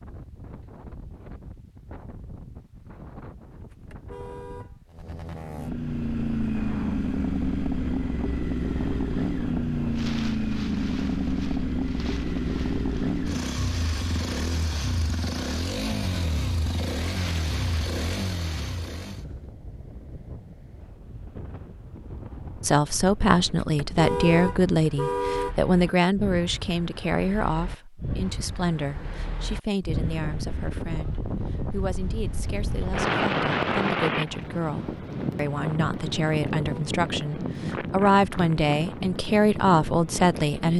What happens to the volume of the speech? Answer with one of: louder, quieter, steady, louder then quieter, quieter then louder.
quieter then louder.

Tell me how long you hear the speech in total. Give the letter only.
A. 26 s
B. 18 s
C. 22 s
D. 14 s
B.